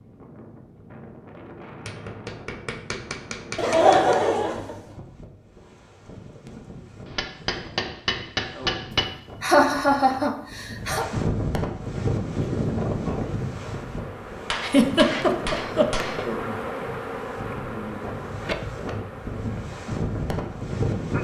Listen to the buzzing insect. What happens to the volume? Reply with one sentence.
The loudness of the buzzing insect goes up, then down.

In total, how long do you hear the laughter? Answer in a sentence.
You can hear the laughter for 5 seconds altogether.